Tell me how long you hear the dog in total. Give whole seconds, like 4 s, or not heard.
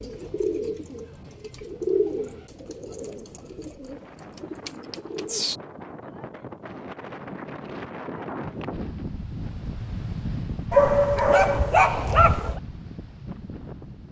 2 s.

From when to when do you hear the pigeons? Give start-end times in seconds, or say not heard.
0.0-5.6.